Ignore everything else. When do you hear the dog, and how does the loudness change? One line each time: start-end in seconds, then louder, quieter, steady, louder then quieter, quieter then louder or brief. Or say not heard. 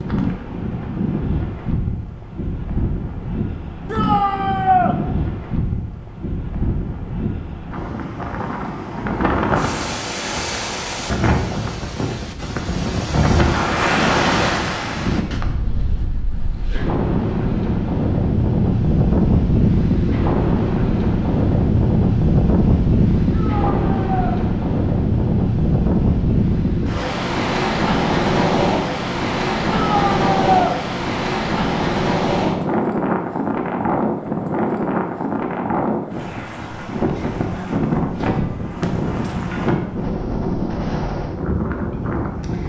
not heard.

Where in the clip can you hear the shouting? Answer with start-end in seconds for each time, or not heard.
3.9-5.0, 23.3-24.4, 29.7-30.8.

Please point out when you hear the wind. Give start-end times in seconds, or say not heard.
0.0-42.6.